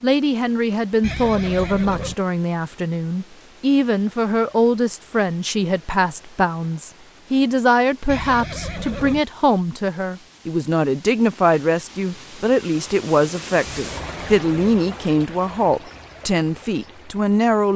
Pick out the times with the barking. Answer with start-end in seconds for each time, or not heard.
not heard.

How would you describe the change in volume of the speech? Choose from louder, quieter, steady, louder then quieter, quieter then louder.
steady.